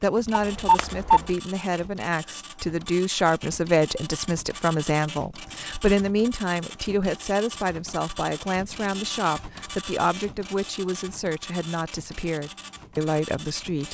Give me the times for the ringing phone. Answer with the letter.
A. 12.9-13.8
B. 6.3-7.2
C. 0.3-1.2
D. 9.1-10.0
C.